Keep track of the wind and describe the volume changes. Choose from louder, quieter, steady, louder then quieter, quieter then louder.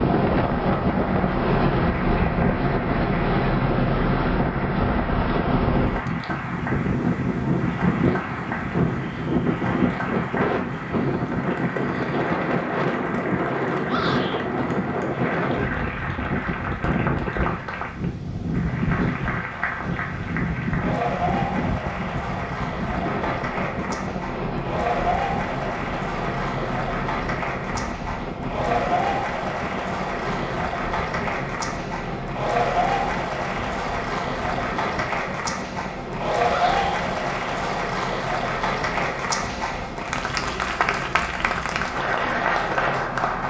quieter.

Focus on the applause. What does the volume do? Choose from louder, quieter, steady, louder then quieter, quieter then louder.
louder.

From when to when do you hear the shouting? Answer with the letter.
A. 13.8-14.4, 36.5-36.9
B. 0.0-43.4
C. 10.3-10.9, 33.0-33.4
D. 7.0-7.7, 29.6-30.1
A.